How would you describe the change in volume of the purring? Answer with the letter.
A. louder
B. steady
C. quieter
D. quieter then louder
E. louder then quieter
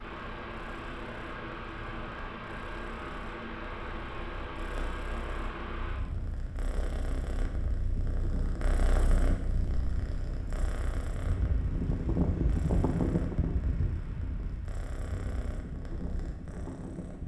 E.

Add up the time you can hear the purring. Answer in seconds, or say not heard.
17 s.